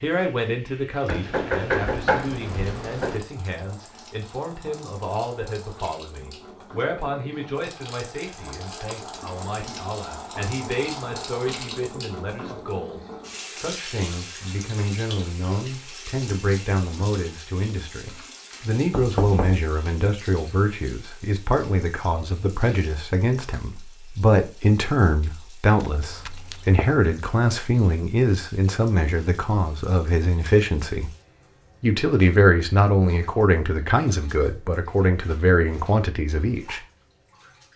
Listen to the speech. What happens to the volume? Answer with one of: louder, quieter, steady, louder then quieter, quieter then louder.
louder.